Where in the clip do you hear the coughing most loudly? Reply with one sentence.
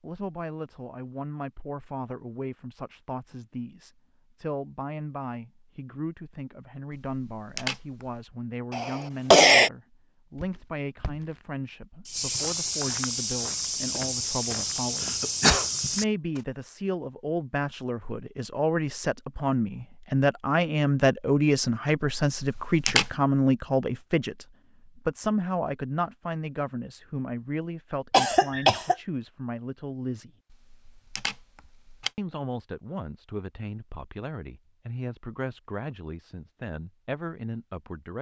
The volume of the coughing peaks at 9 seconds.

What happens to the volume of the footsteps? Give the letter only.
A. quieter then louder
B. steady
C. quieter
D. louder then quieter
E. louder
E.